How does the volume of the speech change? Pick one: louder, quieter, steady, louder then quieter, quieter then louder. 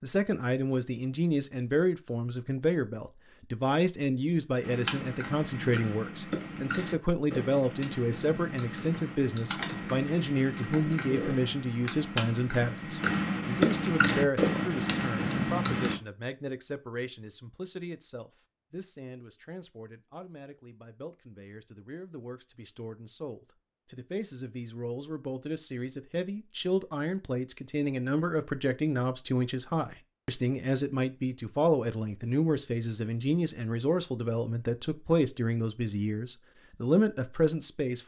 quieter then louder.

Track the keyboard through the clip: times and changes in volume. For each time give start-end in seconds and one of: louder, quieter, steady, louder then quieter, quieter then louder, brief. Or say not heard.
4.6-15.9 louder.